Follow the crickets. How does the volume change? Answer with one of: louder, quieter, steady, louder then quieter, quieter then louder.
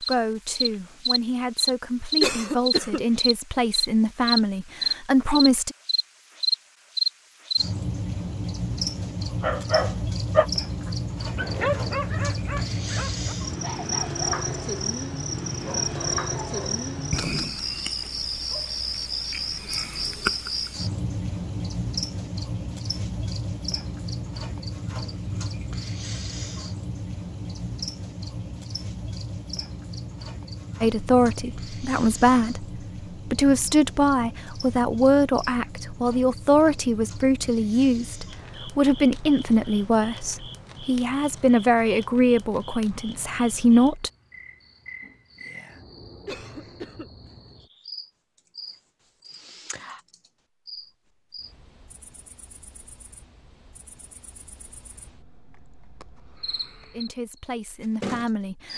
quieter.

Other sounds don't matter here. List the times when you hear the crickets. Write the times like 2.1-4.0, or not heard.
0.0-58.7.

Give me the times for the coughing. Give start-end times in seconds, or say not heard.
2.2-3.0, 46.2-47.1.